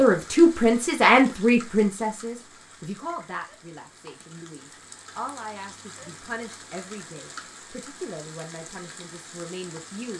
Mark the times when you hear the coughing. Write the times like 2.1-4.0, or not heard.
not heard.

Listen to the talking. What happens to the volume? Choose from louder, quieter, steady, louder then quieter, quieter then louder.
quieter.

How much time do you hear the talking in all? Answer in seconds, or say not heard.
10 s.